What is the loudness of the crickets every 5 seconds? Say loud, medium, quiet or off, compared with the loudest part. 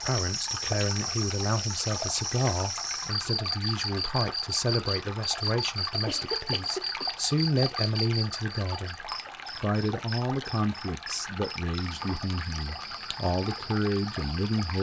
loud, loud, medium.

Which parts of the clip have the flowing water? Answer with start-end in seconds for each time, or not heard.
0.0-14.7.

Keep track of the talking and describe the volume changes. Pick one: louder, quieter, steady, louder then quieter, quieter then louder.
steady.